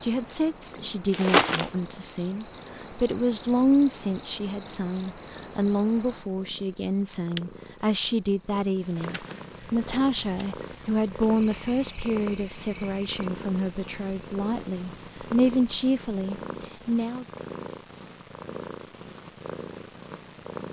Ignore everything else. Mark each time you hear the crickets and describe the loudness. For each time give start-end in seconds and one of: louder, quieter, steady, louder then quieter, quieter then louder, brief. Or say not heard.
0.0-15.8 quieter.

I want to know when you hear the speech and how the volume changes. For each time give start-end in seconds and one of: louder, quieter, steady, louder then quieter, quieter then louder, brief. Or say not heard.
0.0-17.2 steady.